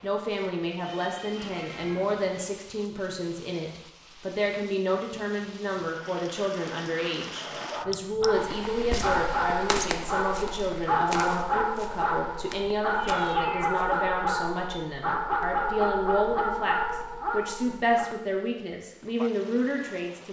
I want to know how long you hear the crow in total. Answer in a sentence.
The crow can't be heard in this clip.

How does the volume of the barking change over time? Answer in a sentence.
The volume of the barking stays about the same.